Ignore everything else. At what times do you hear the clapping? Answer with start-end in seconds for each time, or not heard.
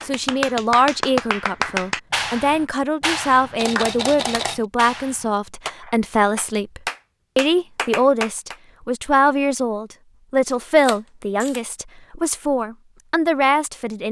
0.0-8.6.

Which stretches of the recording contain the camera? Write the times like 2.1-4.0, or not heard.
3.5-4.7, 10.5-11.6.